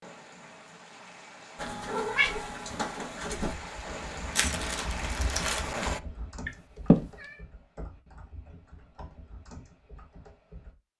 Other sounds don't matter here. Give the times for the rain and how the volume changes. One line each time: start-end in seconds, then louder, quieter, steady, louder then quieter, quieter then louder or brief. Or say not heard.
0.0-6.0 louder.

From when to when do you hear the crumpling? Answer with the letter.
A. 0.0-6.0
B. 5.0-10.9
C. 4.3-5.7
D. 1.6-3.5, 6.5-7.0
C.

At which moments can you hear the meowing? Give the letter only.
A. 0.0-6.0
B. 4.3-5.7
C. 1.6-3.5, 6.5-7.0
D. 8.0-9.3
C.